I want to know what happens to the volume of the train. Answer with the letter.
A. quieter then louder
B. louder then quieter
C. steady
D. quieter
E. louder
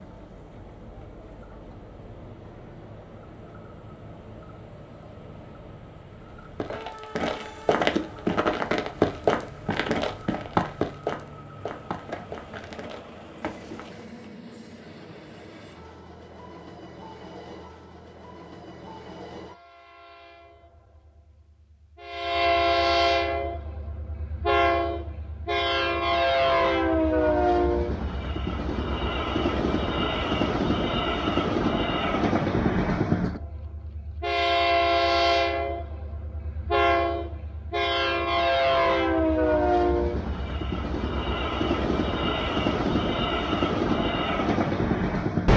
E.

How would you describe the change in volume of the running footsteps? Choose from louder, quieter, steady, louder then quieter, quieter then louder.
quieter.